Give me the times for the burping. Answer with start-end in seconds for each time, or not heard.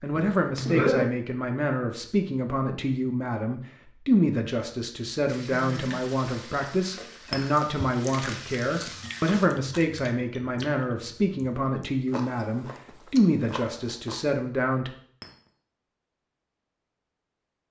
0.1-1.1.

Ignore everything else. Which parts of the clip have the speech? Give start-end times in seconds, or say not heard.
0.0-14.9.